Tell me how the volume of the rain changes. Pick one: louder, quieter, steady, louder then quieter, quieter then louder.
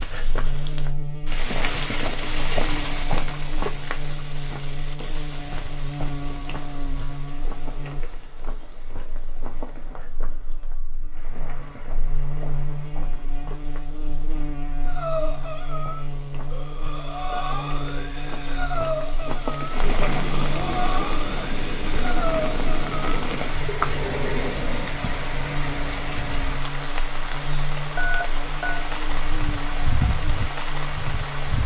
quieter then louder.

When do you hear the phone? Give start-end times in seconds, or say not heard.
27.9-28.9.